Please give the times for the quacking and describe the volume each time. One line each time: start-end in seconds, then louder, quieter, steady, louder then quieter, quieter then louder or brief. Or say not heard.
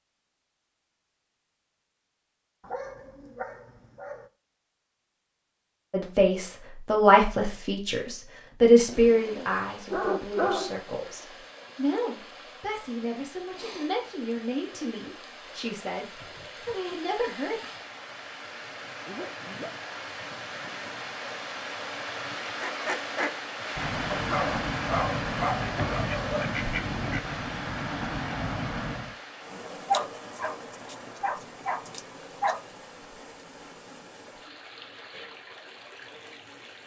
22.6-29.1 steady.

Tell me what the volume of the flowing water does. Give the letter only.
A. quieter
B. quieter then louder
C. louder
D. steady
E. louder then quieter
E.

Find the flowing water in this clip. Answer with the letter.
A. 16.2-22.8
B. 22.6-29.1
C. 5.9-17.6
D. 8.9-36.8
D.